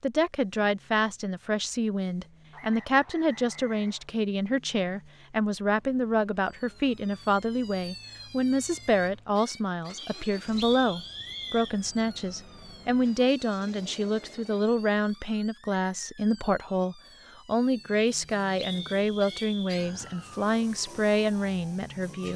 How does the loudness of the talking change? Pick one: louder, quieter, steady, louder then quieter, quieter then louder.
steady.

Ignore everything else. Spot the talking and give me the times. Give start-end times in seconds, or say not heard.
0.0-22.3.